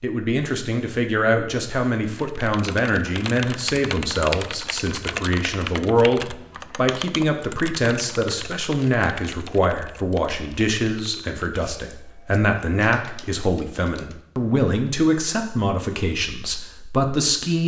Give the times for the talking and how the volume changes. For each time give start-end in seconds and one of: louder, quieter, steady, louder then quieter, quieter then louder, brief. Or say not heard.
0.0-17.6 steady.